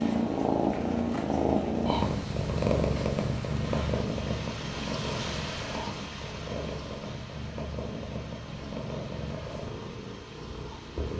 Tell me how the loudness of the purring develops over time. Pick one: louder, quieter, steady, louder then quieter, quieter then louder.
quieter.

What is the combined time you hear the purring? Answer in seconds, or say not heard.
11 s.